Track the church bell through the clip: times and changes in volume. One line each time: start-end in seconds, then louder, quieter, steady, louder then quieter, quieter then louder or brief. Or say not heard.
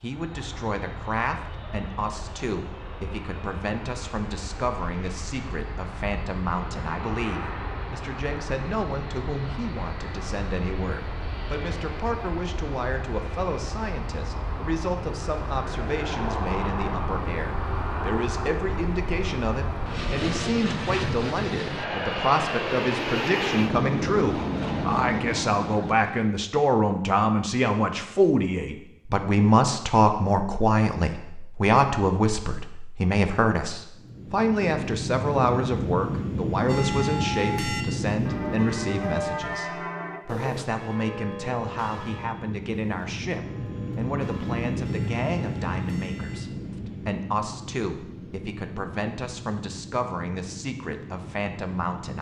36.6-46.5 quieter.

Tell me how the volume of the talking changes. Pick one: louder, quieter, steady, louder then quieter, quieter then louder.
louder then quieter.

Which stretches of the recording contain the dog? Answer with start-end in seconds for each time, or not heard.
not heard.